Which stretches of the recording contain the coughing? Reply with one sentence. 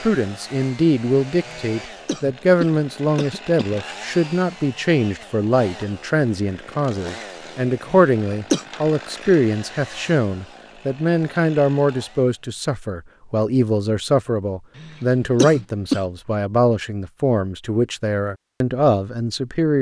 You can hear the coughing from 1.4 to 3.8 s, from 7.8 to 8.7 s and from 14.8 to 16.0 s.